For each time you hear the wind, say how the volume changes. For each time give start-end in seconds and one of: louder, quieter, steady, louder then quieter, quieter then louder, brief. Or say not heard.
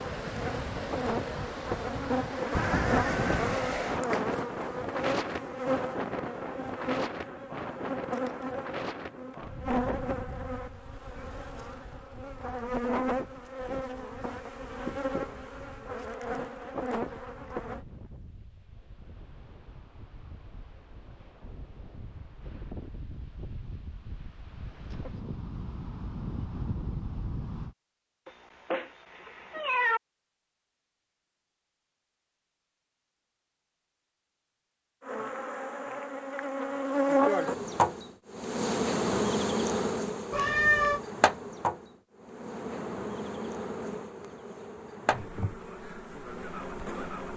0.0-27.8 quieter then louder.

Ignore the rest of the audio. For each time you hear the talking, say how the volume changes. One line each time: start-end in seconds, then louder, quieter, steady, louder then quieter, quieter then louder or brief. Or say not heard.
not heard.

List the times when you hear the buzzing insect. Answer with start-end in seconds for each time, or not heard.
0.0-17.9, 35.0-47.3.